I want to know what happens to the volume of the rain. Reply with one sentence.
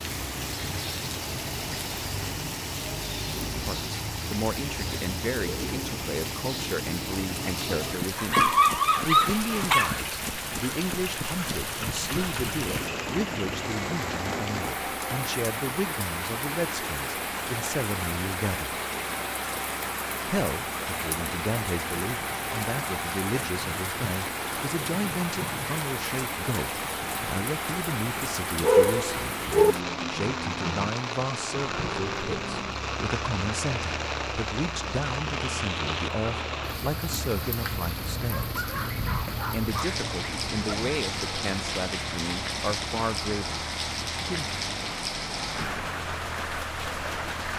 The volume of the rain stays about the same.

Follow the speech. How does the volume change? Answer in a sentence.
The volume of the speech stays about the same.